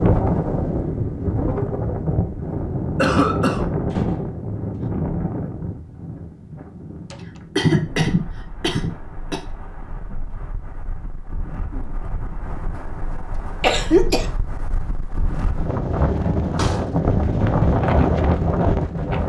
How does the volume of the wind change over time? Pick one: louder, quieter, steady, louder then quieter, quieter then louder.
quieter then louder.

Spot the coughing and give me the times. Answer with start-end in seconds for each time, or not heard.
3.0-3.7, 7.5-9.4, 13.6-14.3.